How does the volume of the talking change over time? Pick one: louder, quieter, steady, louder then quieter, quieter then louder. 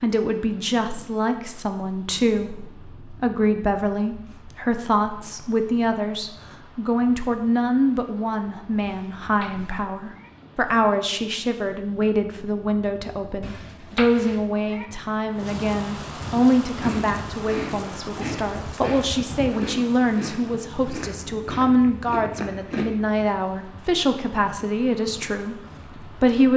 steady.